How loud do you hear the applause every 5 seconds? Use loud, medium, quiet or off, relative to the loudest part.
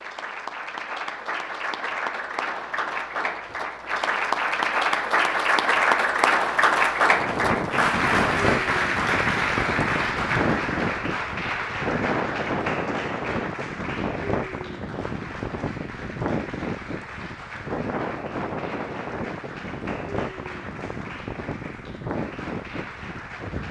medium, loud, medium, quiet, quiet.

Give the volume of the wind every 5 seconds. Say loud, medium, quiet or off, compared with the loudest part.
off, loud, loud, loud, medium.